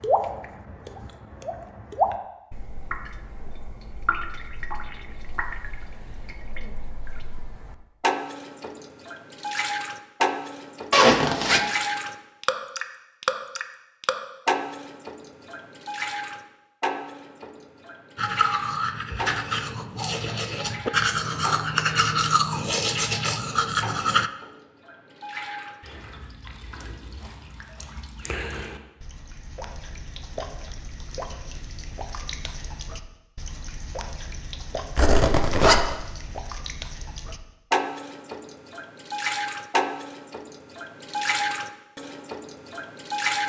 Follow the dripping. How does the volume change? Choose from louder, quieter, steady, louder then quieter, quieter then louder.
quieter then louder.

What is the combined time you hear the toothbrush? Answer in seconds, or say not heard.
6 s.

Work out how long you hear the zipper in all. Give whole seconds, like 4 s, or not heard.
2 s.